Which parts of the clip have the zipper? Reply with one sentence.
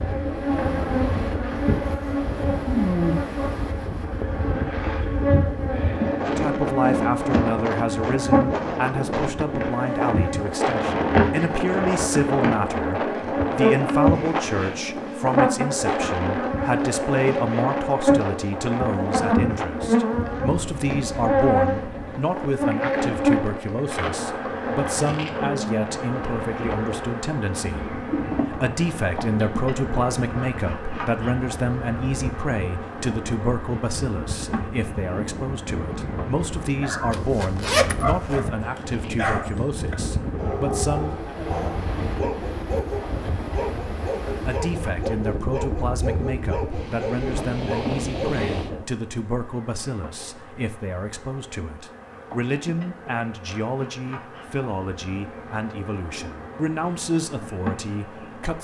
The zipper can be heard from 37.1 to 38.4 s.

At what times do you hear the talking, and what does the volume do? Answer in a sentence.
You can hear the talking from 6.2 to 41.4 s, at a steady volume; and from 44.5 to 58.5 s, at a steady volume.